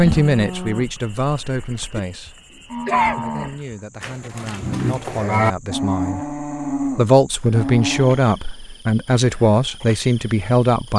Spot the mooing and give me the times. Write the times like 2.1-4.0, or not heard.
0.0-8.2.